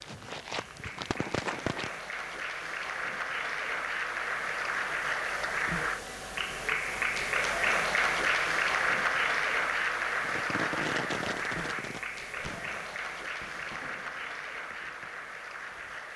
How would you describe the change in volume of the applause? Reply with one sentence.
The loudness of the applause goes up, then down.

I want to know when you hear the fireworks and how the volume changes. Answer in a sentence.
The fireworks can be heard briefly from 0.0 to 2.0 s; and from 10.2 to 15.9 s, getting quieter.